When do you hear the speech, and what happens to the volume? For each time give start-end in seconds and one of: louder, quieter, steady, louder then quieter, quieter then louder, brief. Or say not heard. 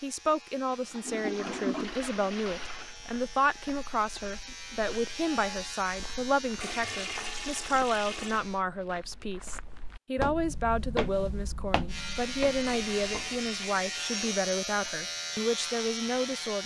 0.0-16.6 steady.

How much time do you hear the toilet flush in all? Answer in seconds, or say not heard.
6 s.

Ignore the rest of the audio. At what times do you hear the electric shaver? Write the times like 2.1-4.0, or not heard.
0.0-8.7, 11.8-16.6.